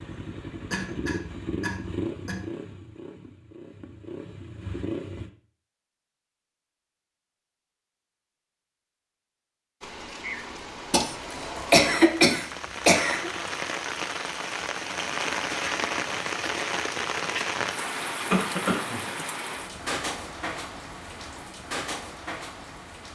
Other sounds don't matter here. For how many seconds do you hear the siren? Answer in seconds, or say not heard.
not heard.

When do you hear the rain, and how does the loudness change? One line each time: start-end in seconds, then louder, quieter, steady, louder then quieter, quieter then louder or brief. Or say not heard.
9.8-23.0 louder then quieter.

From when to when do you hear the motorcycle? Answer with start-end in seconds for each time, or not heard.
0.0-5.3.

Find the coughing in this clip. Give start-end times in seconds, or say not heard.
0.7-2.5, 10.9-13.3, 18.3-19.0.